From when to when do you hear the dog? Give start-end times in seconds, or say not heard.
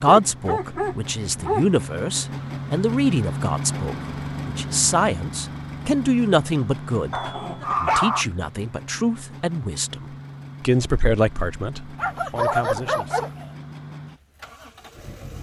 0.1-1.6, 7.1-8.2, 11.9-13.4.